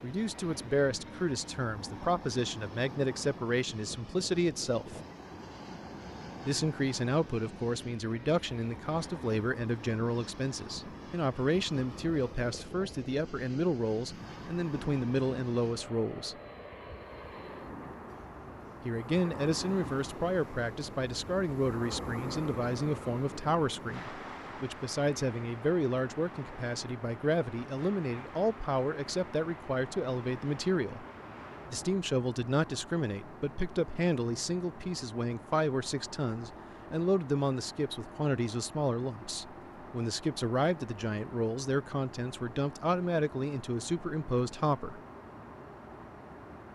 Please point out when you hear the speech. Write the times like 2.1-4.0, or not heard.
0.0-5.0, 6.5-16.4, 18.9-31.1, 31.7-45.0.